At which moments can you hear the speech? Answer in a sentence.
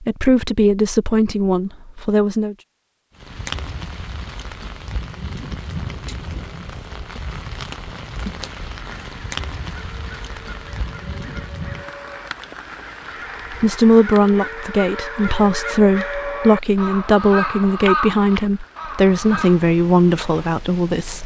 You can hear the speech from 0.0 to 2.5 s and from 13.5 to 21.2 s.